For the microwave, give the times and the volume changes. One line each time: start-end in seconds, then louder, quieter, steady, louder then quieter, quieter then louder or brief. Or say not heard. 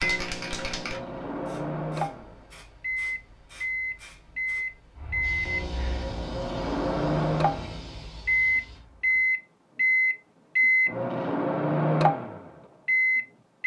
0.0-13.6 louder.